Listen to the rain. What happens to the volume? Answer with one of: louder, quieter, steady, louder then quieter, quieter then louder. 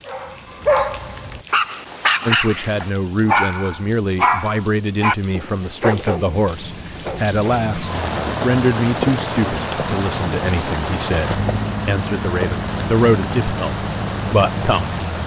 louder.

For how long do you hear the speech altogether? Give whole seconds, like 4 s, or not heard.
13 s.